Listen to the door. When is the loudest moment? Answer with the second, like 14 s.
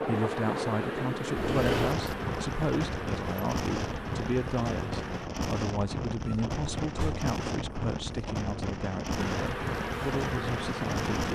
2 s.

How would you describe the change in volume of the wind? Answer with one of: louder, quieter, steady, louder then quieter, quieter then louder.
steady.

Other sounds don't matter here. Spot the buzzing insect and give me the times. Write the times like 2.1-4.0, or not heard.
0.0-5.3, 9.1-11.3.